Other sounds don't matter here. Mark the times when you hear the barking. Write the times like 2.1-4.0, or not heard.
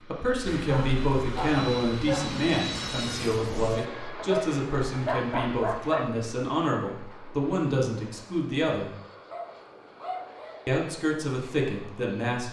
0.5-2.5, 4.2-6.2, 9.3-10.7.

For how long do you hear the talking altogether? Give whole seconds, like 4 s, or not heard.
11 s.